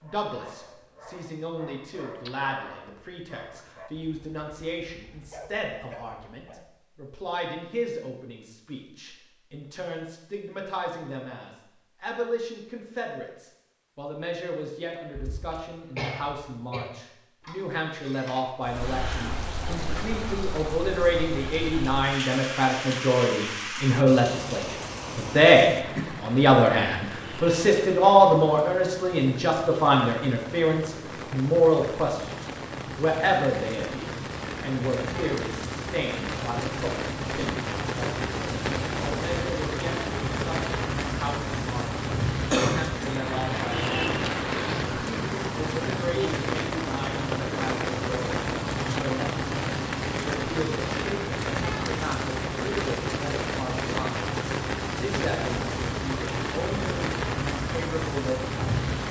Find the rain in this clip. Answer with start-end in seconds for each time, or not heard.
18.6-59.0.